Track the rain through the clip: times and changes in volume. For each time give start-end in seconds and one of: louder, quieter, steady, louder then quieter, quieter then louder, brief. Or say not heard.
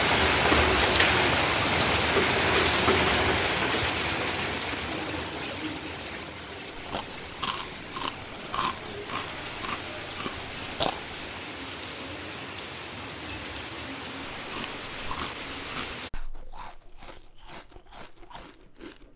0.0-16.1 quieter.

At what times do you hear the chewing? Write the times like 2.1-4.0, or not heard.
6.8-11.2, 14.4-19.1.